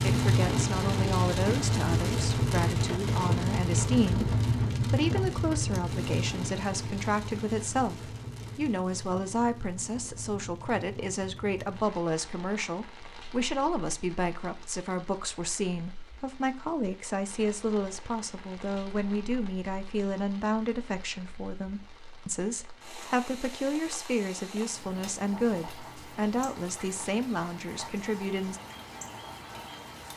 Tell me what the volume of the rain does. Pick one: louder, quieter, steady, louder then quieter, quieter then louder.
quieter then louder.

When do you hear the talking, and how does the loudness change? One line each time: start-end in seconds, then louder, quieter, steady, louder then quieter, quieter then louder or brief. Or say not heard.
0.0-28.6 steady.